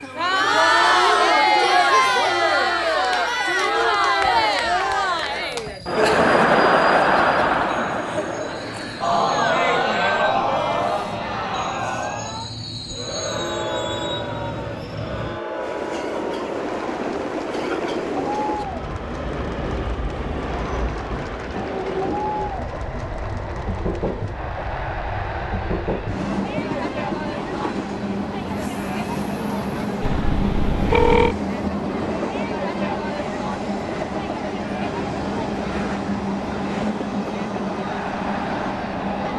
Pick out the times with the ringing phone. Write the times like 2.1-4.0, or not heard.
30.0-31.4.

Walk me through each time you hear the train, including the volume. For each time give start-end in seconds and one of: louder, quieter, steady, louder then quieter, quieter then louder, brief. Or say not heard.
0.0-39.3 louder.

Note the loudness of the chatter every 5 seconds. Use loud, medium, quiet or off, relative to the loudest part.
loud, loud, medium, quiet, quiet, quiet, quiet, quiet.